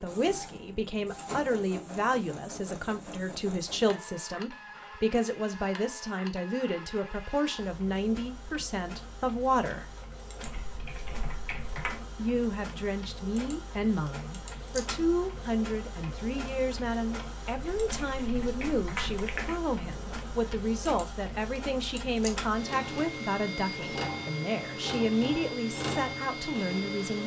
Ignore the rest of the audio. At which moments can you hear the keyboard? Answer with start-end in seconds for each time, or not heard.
10.4-12.1, 17.6-19.6.